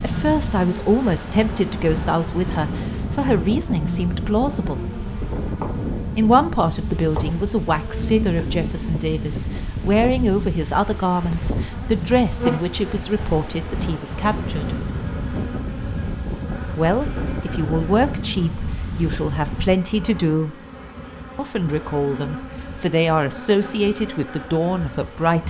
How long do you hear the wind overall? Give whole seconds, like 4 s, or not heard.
20 s.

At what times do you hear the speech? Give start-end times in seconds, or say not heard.
0.0-4.8, 6.2-14.8, 16.8-20.6, 21.4-25.4.